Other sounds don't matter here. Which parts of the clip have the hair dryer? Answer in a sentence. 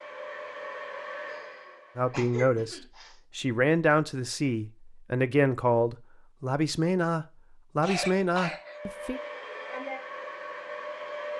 The hair dryer can be heard from 0.0 to 2.3 s and from 8.6 to 11.3 s.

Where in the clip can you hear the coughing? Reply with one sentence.
You can hear the coughing from 1.2 to 3.1 s and from 7.8 to 8.8 s.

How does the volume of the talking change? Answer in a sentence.
The volume of the talking stays about the same.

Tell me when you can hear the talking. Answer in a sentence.
You can hear the talking from 1.9 to 9.2 s.